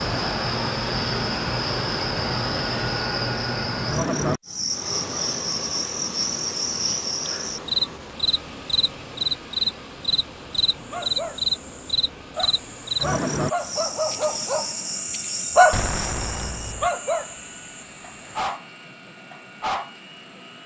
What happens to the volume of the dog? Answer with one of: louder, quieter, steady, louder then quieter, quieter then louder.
louder then quieter.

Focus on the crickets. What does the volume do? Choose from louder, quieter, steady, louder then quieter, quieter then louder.
quieter.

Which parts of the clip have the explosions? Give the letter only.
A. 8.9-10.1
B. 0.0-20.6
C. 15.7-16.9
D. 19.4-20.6
C.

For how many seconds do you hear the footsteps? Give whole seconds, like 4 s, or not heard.
not heard.